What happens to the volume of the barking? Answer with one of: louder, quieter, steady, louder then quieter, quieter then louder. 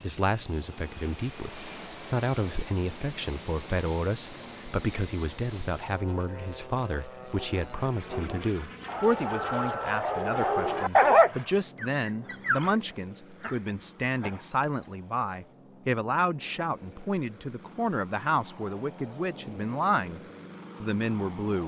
louder then quieter.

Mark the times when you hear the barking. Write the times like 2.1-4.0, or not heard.
7.3-14.9.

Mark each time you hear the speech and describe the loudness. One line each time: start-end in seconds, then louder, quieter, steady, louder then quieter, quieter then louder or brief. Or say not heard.
0.0-20.2 steady
20.8-21.6 brief.